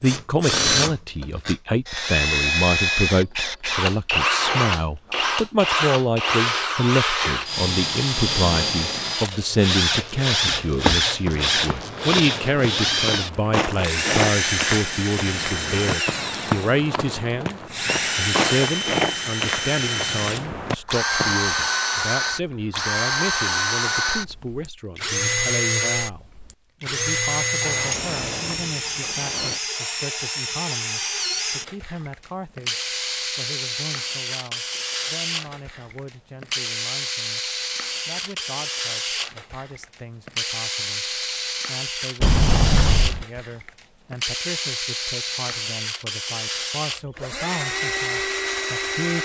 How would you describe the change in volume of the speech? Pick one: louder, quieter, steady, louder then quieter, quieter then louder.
quieter.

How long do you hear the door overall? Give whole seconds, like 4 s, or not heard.
4 s.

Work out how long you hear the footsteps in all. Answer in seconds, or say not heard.
11 s.